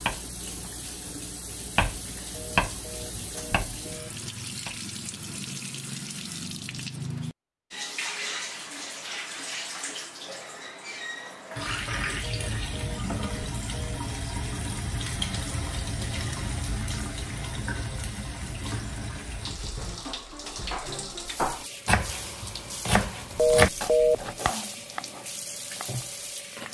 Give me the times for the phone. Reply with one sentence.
You can hear the phone from 2.3 to 4.1 s, from 12.2 to 14.0 s and from 23.4 to 24.3 s.